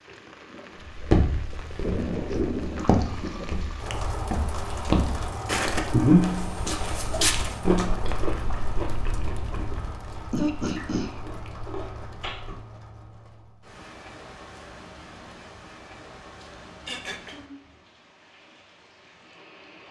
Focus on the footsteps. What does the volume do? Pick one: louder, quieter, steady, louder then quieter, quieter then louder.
louder.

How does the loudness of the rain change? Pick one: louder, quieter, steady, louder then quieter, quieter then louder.
quieter.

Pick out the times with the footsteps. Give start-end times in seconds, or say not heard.
0.9-7.8.